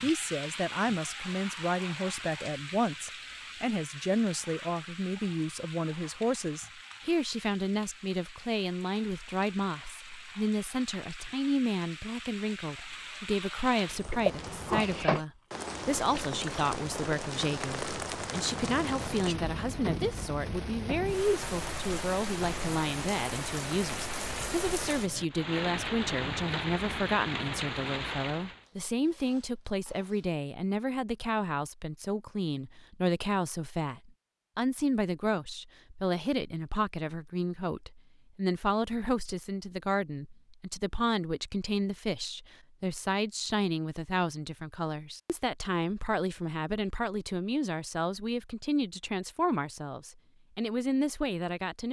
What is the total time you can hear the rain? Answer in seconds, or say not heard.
29 s.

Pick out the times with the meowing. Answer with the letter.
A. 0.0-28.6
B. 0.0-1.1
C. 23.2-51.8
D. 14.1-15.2
D.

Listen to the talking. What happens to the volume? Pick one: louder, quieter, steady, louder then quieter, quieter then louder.
steady.